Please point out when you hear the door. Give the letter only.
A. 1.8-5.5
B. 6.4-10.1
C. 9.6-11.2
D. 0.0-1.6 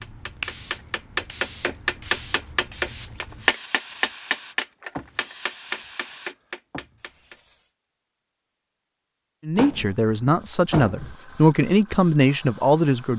C.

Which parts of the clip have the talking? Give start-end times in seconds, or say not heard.
9.4-13.1.